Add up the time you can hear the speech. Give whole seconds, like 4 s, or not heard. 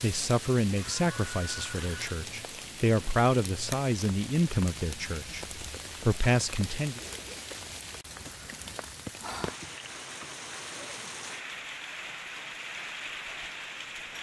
7 s.